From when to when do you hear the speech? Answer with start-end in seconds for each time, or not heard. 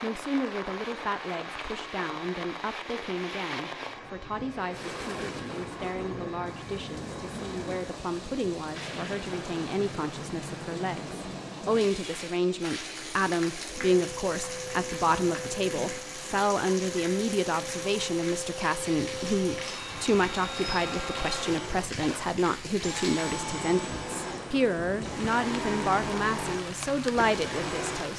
0.0-28.1.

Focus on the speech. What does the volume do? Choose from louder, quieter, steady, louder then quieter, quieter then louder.
louder.